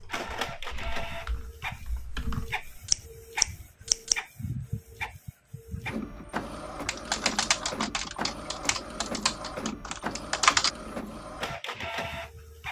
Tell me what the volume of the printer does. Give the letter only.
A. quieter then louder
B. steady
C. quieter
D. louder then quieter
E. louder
B.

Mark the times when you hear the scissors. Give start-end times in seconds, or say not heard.
2.9-4.2.